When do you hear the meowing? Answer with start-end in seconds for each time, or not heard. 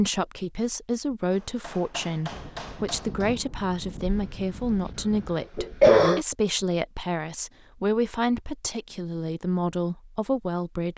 not heard.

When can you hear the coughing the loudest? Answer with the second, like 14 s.
6 s.